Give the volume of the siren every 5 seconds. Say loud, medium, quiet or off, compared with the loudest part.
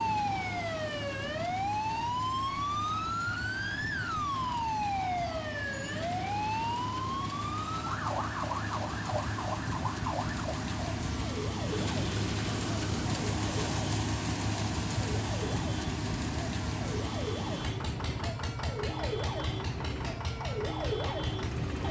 loud, loud, medium, medium, loud.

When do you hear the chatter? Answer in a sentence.
You can't hear the chatter here.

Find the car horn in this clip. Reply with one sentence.
You can't hear the car horn here.